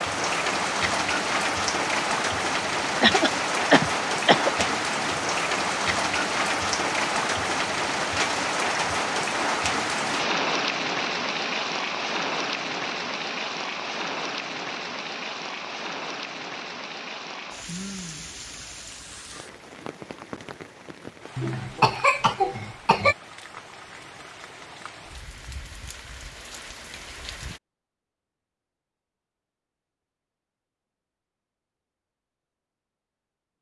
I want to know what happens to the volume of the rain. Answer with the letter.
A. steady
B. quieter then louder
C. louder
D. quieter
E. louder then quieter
D.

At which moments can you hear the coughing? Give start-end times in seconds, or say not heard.
3.0-4.7, 21.4-23.1.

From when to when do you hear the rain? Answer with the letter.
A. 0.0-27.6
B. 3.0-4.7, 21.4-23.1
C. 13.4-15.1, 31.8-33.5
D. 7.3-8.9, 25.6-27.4
A.